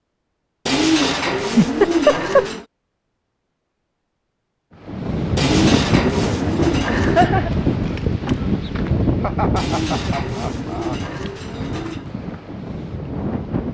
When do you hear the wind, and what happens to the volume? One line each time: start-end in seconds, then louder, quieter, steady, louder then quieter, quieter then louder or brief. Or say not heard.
4.8-13.6 quieter.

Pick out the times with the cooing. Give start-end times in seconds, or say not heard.
0.7-2.6, 5.3-7.3, 9.6-12.1.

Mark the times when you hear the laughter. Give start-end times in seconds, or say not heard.
1.4-2.5, 6.8-7.5, 9.2-11.0.